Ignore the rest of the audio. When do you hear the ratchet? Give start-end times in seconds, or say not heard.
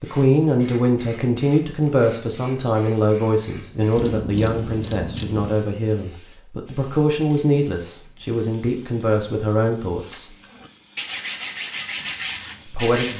4.0-5.5.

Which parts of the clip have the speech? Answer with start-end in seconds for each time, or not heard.
0.0-10.2, 12.7-13.1.